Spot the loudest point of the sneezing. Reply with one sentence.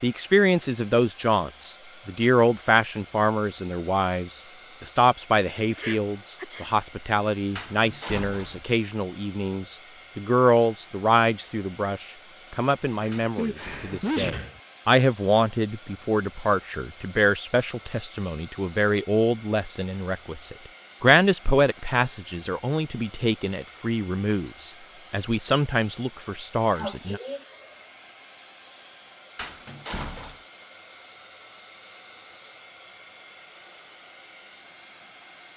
The loudest moment of the sneezing is at 14 seconds.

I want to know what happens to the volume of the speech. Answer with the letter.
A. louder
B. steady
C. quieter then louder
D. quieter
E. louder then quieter
B.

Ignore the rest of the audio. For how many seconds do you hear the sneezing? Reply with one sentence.
The sneezing can be heard for 3 seconds in total.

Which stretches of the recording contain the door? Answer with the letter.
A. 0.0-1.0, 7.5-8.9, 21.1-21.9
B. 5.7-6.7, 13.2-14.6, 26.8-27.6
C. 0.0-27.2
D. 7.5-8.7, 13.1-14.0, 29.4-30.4
D.